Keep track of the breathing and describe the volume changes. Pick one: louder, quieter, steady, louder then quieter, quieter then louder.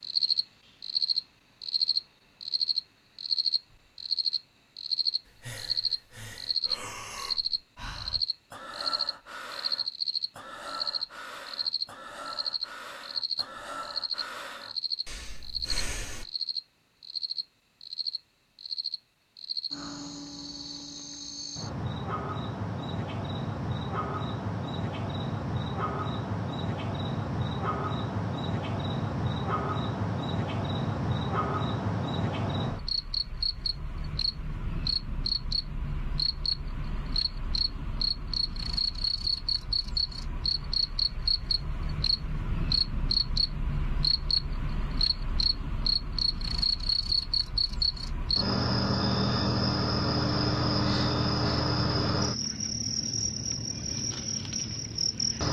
steady.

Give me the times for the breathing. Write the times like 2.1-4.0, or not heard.
5.2-16.2.